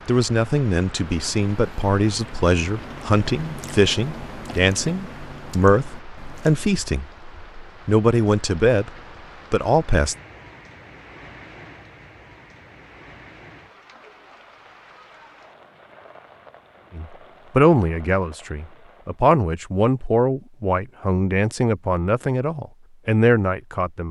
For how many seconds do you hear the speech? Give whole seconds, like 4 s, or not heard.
16 s.